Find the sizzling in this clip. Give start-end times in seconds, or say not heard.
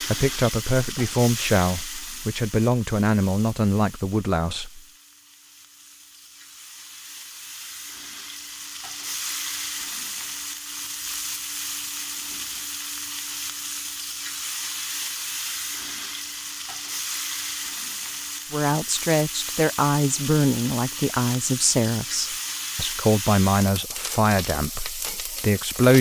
0.0-25.9.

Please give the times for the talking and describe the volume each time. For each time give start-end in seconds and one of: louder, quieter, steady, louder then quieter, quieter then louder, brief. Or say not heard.
0.0-4.8 steady
18.5-25.9 steady.